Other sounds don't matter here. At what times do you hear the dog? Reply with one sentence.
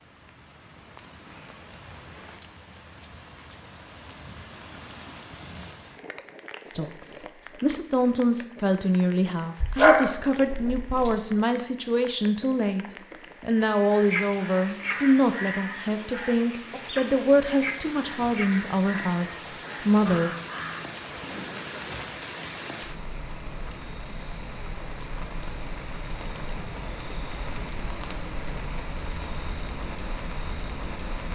The dog can be heard from 9.6 to 11.2 s.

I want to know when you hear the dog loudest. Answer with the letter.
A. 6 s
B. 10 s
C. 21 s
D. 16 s
B.